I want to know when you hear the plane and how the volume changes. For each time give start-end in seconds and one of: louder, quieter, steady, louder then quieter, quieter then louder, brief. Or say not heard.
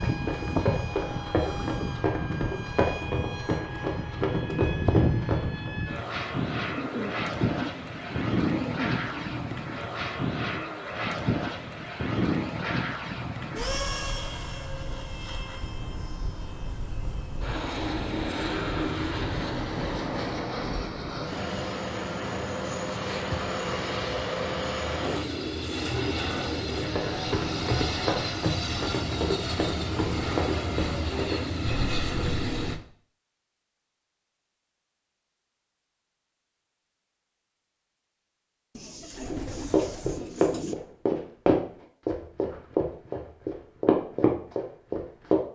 0.0-32.8 steady.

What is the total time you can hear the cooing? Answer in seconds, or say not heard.
7 s.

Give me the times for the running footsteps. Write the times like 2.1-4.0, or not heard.
0.0-5.7, 26.8-32.9, 39.6-45.4.